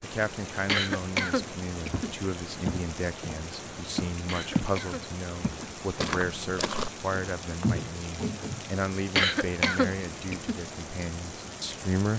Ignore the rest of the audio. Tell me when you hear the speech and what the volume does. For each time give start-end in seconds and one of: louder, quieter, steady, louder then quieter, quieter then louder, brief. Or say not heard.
0.0-12.1 steady.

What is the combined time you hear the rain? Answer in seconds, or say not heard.
12 s.